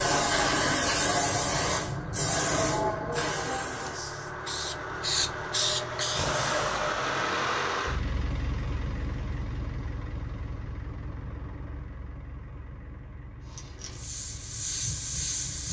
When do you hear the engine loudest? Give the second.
7 s.